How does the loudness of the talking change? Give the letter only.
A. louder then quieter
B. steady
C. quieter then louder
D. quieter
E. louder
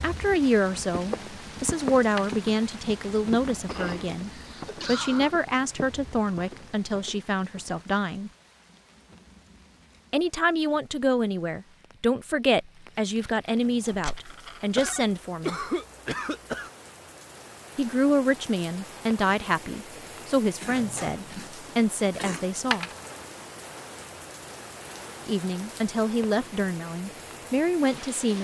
B.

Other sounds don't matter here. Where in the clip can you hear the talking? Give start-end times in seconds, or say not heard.
0.0-8.3, 10.1-15.6, 17.8-22.9, 25.2-28.3.